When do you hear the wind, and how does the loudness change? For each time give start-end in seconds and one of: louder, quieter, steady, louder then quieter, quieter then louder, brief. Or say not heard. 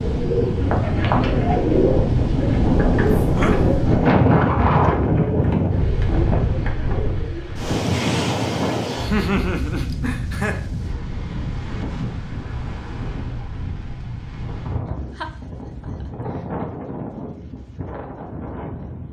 0.0-19.0 quieter.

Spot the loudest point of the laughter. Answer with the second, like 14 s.
9 s.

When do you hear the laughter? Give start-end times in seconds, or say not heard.
3.1-3.7, 9.0-10.6, 15.2-16.1.